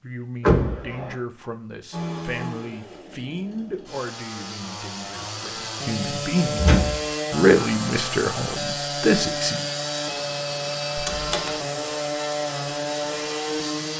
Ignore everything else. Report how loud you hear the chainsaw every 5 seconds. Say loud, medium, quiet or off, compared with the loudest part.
medium, loud, loud.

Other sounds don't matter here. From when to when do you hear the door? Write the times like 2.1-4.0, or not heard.
0.5-1.1, 6.5-7.0, 10.9-11.6.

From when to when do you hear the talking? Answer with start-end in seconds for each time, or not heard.
0.0-9.6.